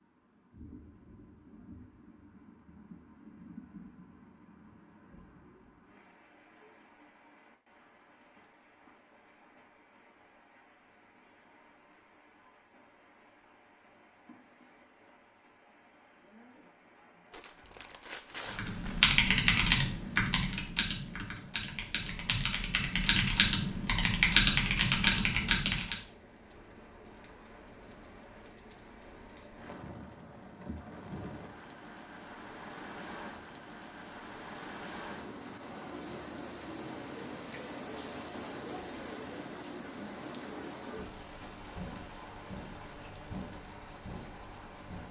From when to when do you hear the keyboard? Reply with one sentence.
You can hear the keyboard from 18.4 to 25.9 s.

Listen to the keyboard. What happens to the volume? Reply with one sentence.
The volume of the keyboard goes down, then up.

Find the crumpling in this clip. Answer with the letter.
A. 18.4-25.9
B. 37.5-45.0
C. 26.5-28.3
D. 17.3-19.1
D.